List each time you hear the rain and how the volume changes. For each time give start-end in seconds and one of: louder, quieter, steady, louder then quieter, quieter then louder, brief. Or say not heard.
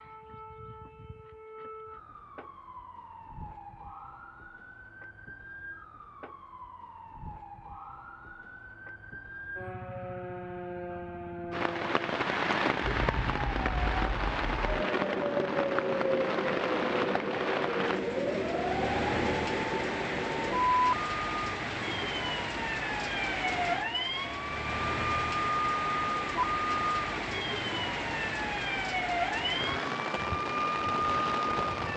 11.5-31.9 steady.